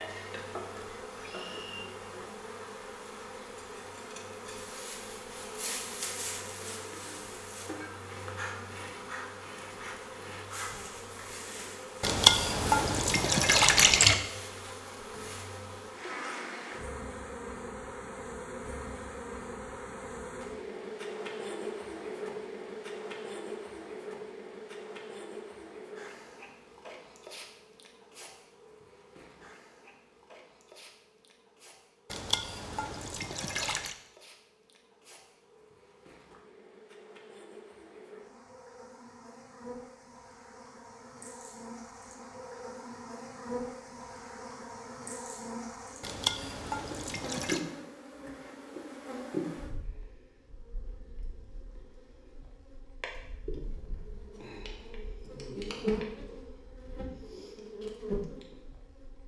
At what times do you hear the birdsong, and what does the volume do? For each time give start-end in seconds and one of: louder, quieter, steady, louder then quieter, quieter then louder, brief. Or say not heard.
not heard.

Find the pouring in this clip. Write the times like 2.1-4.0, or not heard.
12.0-14.2, 32.1-34.0, 46.0-47.6.